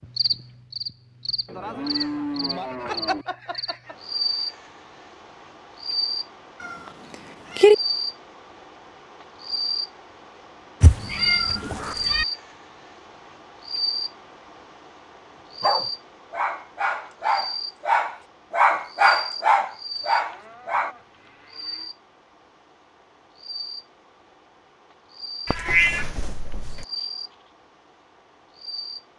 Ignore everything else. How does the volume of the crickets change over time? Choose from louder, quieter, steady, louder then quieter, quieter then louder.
quieter.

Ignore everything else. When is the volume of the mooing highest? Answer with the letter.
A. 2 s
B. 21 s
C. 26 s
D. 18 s
A.